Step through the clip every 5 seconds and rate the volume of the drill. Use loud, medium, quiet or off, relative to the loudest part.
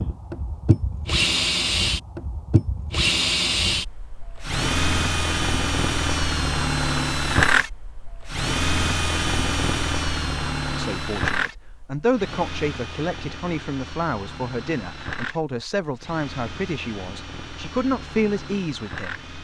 loud, loud, medium, quiet.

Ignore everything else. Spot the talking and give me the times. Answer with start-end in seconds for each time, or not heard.
10.7-19.2.